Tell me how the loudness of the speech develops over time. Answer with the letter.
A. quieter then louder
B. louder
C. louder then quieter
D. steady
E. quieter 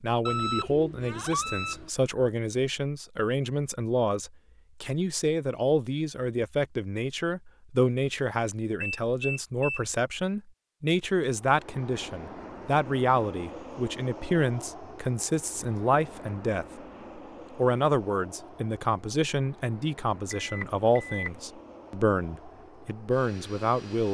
D.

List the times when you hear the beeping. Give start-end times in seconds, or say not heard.
0.2-1.9, 8.8-9.8, 20.4-21.3.